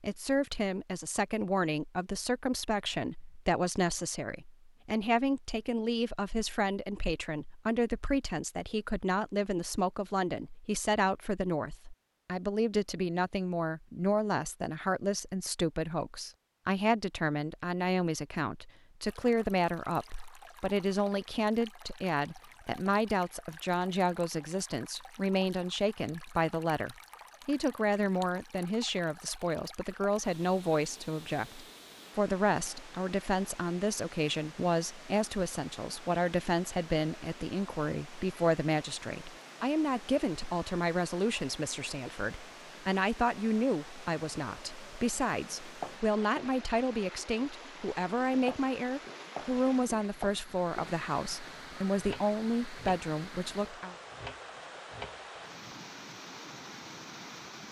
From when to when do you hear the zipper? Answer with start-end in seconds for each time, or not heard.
not heard.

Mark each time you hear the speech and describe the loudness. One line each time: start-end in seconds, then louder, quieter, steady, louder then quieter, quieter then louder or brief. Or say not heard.
0.0-54.0 steady.